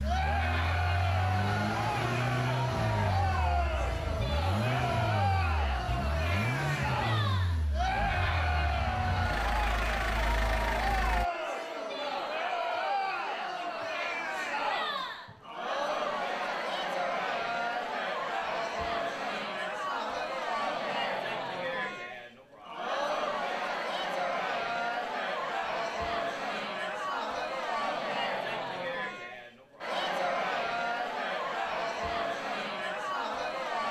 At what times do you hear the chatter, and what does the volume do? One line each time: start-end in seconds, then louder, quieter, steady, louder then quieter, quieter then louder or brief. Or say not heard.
0.0-33.8 steady.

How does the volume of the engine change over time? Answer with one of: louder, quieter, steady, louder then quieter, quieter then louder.
steady.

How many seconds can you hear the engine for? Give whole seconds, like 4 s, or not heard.
11 s.